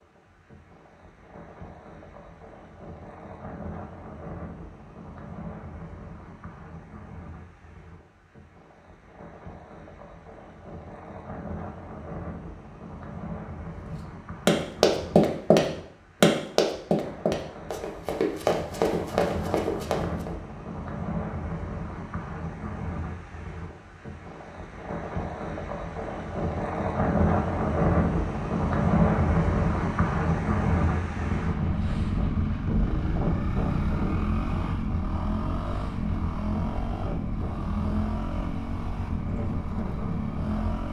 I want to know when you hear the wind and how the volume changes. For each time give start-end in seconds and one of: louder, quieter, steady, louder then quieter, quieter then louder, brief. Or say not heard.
0.0-40.8 louder then quieter.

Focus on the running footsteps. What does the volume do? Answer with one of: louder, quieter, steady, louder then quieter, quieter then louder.
quieter.